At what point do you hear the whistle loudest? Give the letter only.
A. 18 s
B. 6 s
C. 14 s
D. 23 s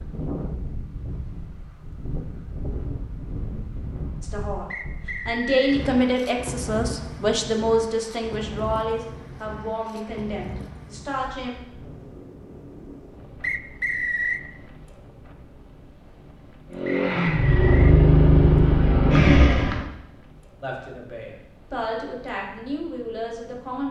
C.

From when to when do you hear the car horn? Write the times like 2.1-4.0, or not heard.
not heard.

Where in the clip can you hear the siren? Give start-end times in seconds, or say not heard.
not heard.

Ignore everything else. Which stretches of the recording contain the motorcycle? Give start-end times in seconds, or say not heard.
16.7-19.9.